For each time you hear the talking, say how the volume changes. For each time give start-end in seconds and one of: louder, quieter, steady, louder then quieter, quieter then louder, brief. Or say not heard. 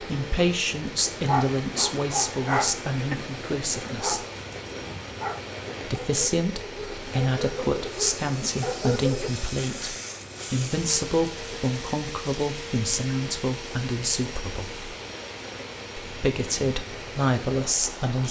0.0-4.2 quieter
5.8-14.8 steady
16.1-18.2 brief.